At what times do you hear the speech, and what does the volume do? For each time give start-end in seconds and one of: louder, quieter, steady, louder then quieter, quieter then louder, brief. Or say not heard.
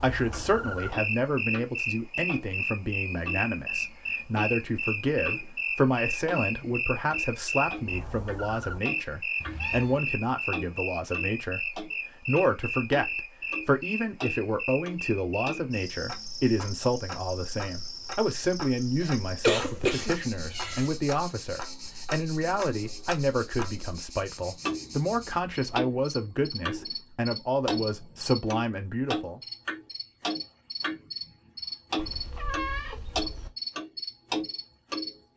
0.0-29.4 steady.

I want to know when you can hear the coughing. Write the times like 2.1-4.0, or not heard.
19.0-20.2.